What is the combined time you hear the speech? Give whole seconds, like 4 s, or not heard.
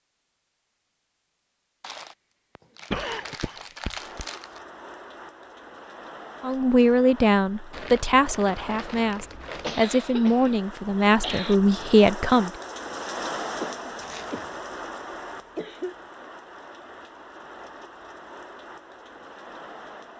6 s.